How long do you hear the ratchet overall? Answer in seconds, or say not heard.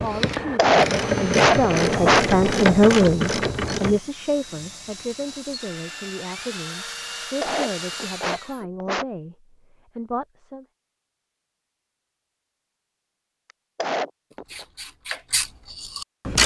6 s.